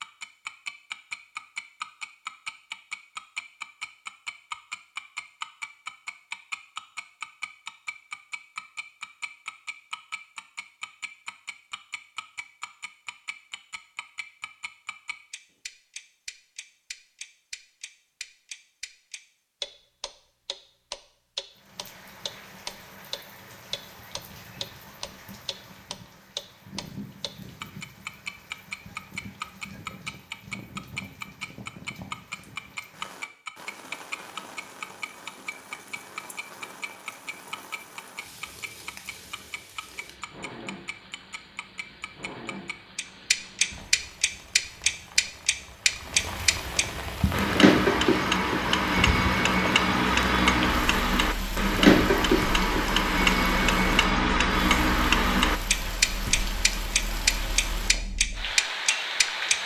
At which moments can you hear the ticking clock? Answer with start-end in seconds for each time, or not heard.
0.0-59.5.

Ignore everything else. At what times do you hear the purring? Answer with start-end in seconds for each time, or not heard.
not heard.